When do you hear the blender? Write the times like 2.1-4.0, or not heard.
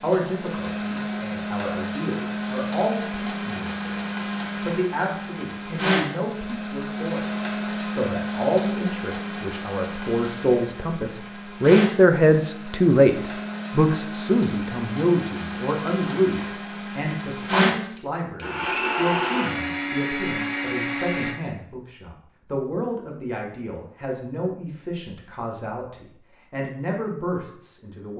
0.0-21.4.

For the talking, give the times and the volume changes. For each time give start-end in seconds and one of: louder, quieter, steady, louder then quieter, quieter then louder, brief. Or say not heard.
0.0-28.1 louder then quieter.